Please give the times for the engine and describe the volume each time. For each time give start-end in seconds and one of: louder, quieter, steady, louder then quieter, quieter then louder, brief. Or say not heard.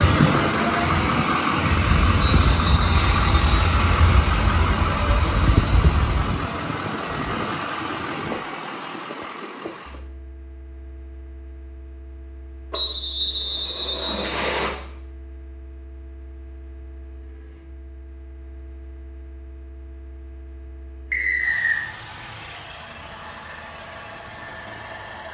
0.0-25.2 quieter then louder.